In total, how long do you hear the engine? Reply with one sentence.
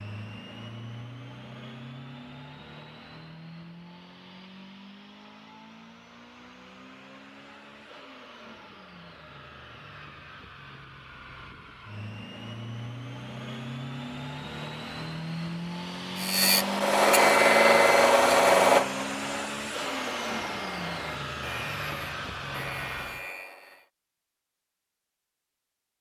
You can hear the engine for 23 seconds altogether.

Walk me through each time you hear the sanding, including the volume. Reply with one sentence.
You can hear the sanding from 16.2 to 23.9 s, getting quieter.